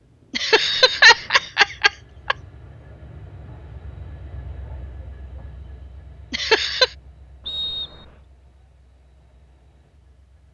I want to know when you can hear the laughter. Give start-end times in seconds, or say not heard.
0.3-2.4, 6.3-6.9.